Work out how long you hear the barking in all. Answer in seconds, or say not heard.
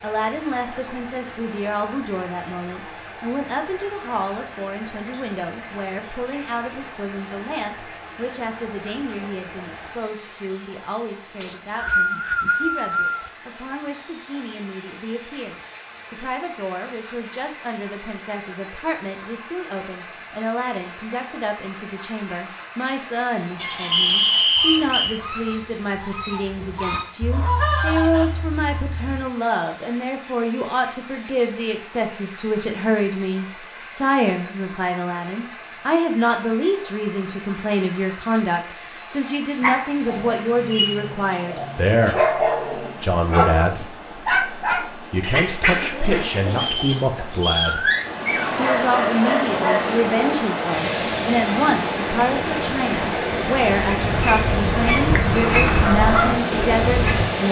11 s.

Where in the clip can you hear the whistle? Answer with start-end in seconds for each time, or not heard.
11.4-13.3, 23.9-25.2, 46.5-47.8.